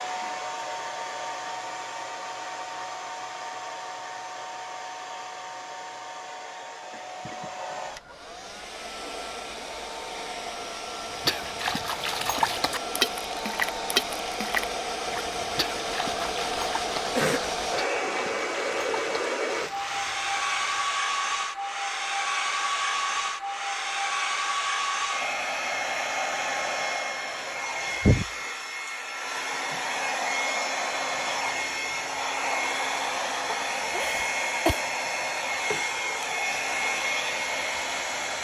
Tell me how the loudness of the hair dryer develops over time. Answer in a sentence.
The volume of the hair dryer goes up.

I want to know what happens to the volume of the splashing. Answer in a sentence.
The volume of the splashing goes down.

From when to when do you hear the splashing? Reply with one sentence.
You can hear the splashing from 11.1 to 21.0 s.